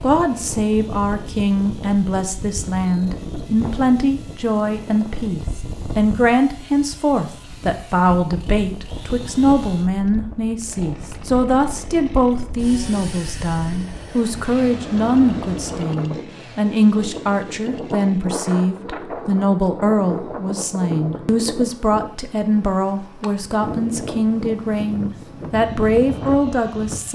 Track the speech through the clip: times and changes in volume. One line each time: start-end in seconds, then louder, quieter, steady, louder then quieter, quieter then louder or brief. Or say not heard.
0.0-27.1 steady.